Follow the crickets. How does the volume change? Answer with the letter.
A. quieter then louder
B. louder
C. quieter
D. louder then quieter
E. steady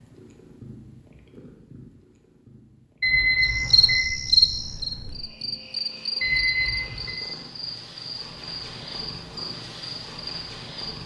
C.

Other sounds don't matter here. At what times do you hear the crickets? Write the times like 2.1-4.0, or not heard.
3.4-11.0.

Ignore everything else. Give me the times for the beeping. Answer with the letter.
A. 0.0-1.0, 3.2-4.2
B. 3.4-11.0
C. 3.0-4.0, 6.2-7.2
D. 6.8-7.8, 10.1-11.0
C.